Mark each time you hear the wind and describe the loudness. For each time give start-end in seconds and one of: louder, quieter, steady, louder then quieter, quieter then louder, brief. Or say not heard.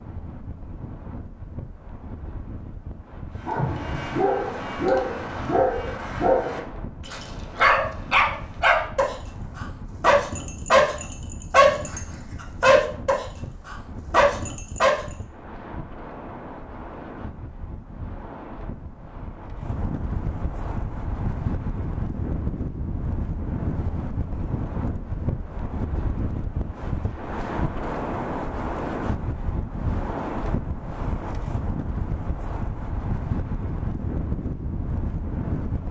0.0-35.8 louder.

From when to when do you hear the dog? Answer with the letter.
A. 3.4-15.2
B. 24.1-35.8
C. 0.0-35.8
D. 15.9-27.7
A.